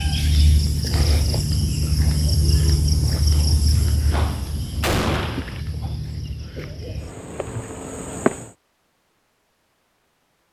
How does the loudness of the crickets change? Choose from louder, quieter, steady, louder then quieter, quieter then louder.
quieter.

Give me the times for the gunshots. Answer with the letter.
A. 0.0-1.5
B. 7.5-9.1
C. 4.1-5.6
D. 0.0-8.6
C.